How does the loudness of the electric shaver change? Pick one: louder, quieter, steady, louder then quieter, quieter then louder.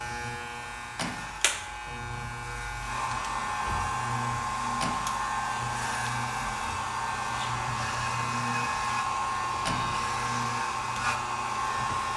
steady.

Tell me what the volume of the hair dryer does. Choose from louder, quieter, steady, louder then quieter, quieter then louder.
louder.